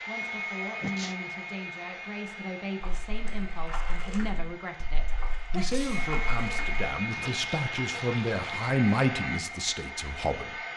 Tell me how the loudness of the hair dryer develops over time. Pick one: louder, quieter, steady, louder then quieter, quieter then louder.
quieter then louder.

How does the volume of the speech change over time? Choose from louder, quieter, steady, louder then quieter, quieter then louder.
louder.